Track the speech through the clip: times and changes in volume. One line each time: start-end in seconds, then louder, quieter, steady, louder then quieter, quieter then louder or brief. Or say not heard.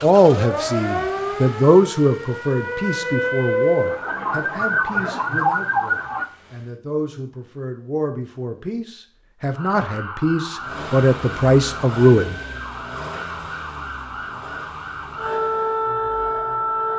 0.0-12.3 quieter then louder.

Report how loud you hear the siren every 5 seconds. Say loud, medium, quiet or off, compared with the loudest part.
loud, loud, medium, loud.